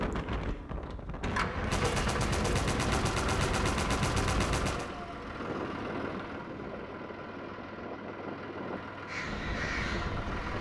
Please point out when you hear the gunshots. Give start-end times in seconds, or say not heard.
1.7-4.9.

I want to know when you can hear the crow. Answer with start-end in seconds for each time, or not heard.
9.1-10.5.